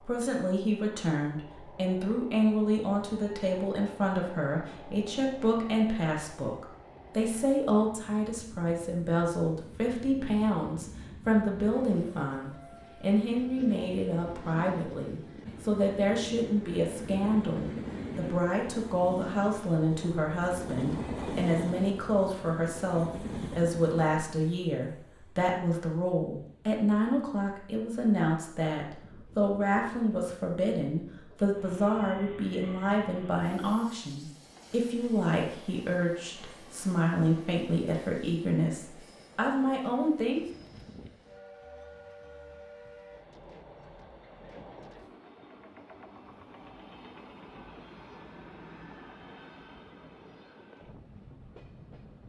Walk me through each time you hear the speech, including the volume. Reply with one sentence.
You can hear the speech from 0.1 to 40.5 s, at a steady volume.